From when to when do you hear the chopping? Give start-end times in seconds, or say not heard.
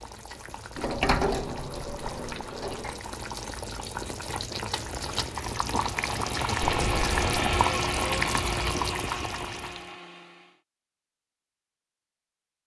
not heard.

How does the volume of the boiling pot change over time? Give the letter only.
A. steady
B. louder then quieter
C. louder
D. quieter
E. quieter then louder
C.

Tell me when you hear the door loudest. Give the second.
1 s.